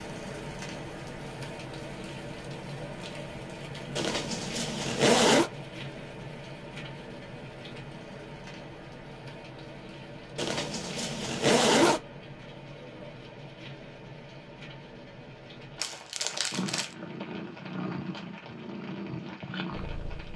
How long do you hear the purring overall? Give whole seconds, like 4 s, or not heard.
4 s.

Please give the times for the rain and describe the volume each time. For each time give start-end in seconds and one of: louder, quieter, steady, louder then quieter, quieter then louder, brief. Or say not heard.
0.0-20.3 quieter.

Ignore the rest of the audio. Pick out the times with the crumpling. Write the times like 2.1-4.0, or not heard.
15.8-16.9.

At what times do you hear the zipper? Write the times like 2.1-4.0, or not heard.
4.0-5.5, 10.3-12.0.